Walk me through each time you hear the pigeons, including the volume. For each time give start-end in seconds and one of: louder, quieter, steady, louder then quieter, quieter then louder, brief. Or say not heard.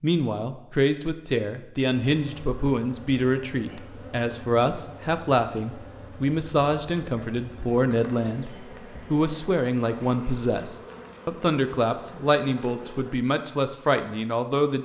not heard.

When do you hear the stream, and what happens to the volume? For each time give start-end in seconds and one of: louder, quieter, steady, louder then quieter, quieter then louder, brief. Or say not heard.
not heard.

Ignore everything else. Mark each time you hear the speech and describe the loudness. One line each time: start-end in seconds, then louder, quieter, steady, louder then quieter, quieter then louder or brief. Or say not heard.
0.0-14.7 steady.